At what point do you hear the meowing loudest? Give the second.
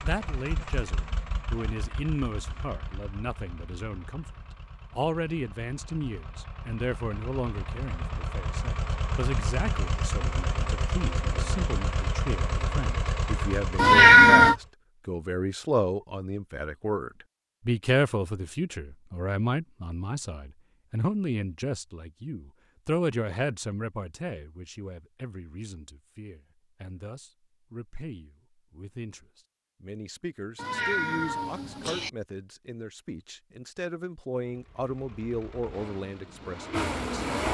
14 s.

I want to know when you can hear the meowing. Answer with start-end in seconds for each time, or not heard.
13.8-14.6, 30.6-32.1.